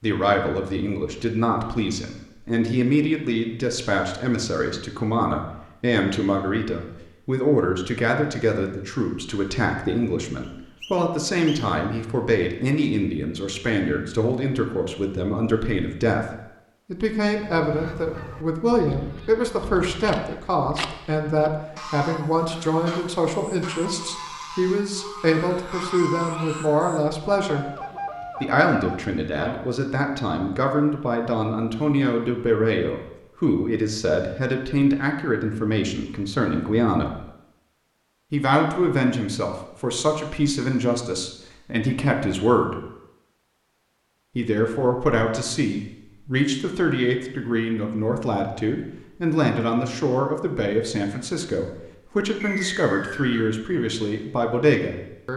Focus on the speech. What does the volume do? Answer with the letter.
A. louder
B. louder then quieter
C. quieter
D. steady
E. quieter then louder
D.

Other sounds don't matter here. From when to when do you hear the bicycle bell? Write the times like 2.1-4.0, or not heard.
not heard.